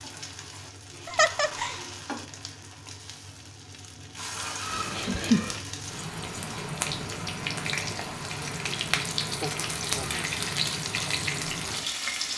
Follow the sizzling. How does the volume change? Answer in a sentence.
The volume of the sizzling goes up.